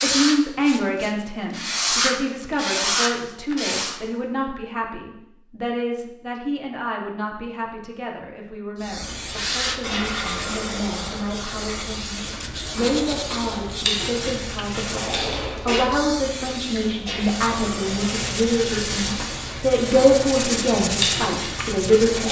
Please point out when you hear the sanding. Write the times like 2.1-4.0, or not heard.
0.0-4.0, 9.2-15.3, 17.2-22.2.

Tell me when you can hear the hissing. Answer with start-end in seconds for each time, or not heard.
8.8-22.2.